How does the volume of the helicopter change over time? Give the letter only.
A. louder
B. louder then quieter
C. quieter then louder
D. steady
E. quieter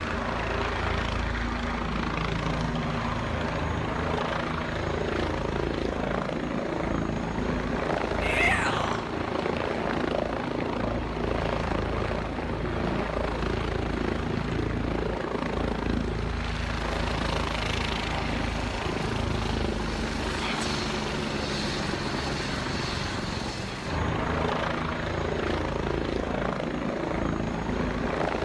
D.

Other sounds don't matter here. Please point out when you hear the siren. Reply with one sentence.
You can't hear the siren here.